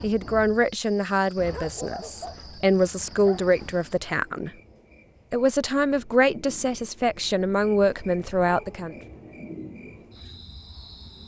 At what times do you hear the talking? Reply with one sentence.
You can hear the talking from 0.0 to 4.5 s and from 5.3 to 8.9 s.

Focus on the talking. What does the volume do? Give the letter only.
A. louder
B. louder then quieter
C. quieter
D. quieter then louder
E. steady
E.